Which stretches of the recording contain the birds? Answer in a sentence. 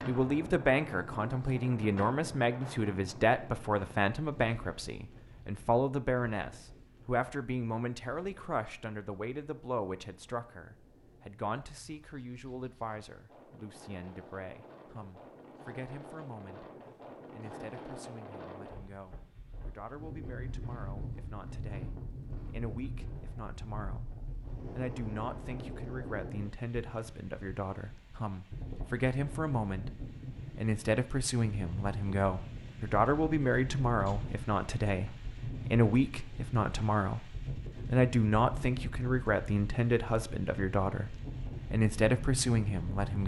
The birds can't be heard in this clip.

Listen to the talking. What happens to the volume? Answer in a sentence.
The loudness of the talking goes down, then up.